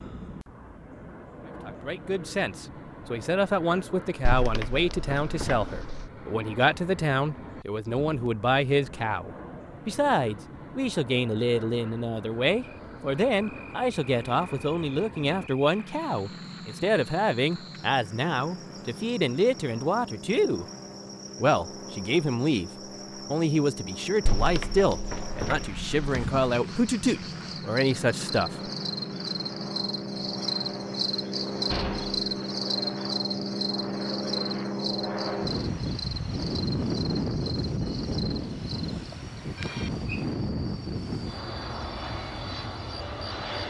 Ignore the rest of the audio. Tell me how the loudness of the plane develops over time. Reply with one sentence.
The volume of the plane goes up.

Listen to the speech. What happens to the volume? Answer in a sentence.
The volume of the speech stays about the same.